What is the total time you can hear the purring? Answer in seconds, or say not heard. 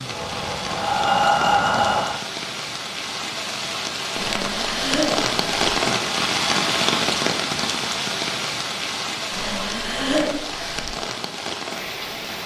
not heard.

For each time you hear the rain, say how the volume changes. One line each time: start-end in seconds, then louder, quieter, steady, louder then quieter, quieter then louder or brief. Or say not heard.
0.0-12.4 louder then quieter.